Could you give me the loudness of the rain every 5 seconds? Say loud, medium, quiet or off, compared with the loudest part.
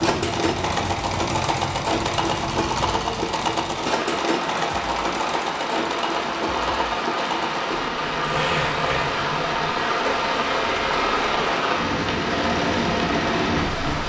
medium, loud, loud.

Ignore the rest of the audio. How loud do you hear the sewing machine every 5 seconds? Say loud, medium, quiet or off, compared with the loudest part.
loud, loud, medium.